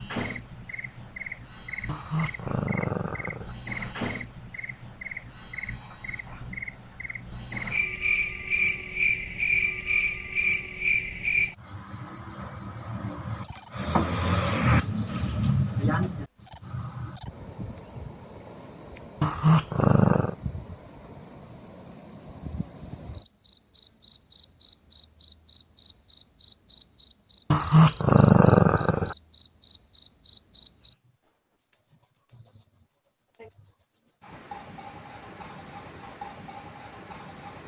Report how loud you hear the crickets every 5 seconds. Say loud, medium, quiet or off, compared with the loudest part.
medium, medium, loud, loud, medium, medium, medium, medium.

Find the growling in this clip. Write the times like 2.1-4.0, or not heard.
1.9-3.5, 19.2-20.4, 27.5-29.1.